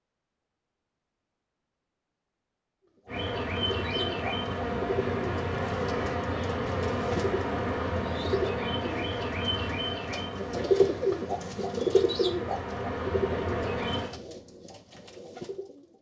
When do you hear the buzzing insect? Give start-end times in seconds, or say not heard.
3.0-14.1.